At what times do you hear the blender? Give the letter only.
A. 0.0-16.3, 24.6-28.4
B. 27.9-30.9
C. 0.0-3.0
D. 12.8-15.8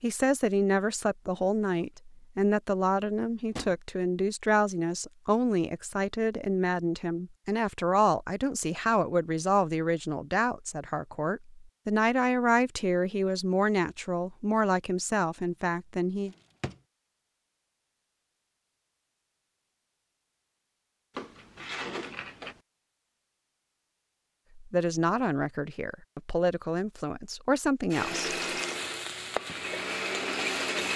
B.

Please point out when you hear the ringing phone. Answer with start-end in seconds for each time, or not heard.
not heard.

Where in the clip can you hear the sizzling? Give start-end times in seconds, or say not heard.
28.2-30.9.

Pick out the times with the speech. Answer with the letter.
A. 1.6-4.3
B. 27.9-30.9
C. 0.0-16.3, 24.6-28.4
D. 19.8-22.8
C.